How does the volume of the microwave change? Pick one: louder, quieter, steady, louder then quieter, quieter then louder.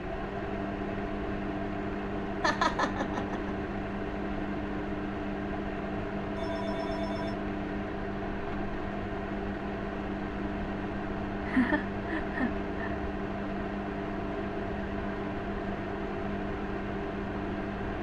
steady.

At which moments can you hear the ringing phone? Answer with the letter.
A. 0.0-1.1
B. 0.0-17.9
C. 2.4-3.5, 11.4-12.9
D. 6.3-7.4
D.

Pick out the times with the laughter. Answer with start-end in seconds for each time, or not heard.
2.4-3.5, 11.4-12.9.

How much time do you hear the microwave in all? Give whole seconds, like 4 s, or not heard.
18 s.